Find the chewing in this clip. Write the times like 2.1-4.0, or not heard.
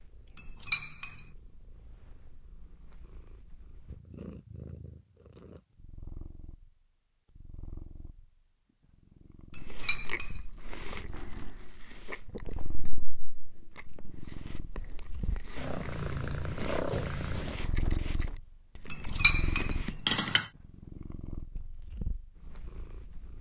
9.6-20.2.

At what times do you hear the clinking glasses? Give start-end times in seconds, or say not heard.
0.3-1.2, 9.6-10.4, 18.9-20.5.